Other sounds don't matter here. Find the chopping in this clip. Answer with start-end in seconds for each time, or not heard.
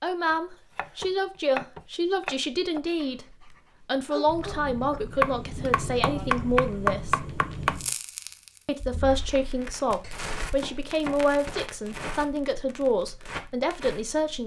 0.3-2.8, 5.2-7.9, 10.0-12.2.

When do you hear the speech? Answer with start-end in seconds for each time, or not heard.
0.0-7.2, 8.7-14.4.